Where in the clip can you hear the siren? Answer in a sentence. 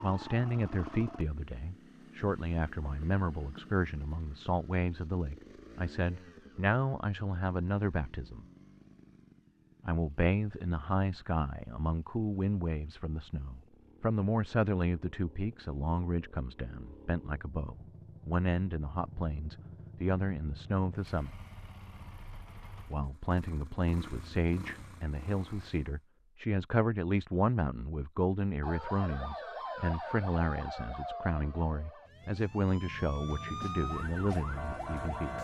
The siren can be heard from 28.6 to 35.3 s.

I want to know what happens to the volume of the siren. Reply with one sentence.
The loudness of the siren goes down, then up.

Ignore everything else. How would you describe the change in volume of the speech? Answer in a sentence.
The loudness of the speech stays about the same.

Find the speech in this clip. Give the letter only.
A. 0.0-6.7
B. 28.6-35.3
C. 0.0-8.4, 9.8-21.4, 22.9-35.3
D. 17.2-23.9
C.